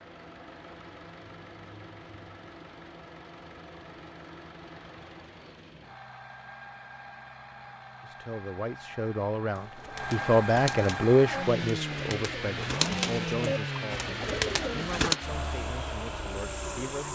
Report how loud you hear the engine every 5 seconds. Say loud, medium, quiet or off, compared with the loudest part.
quiet, quiet, loud, loud.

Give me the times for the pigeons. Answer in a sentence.
You can hear the pigeons from 9.6 to 15.2 s.